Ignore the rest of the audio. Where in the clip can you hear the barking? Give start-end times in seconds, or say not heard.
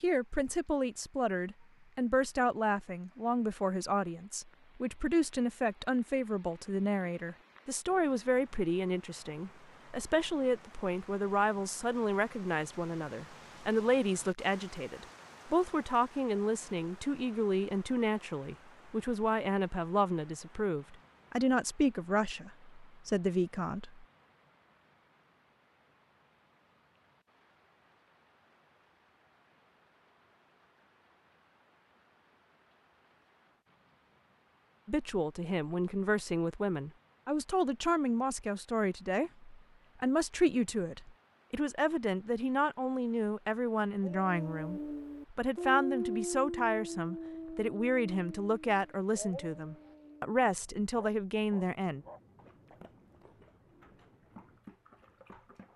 44.0-55.7.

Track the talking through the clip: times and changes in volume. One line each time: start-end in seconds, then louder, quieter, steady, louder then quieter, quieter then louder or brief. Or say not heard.
0.0-24.1 steady
34.9-52.0 steady.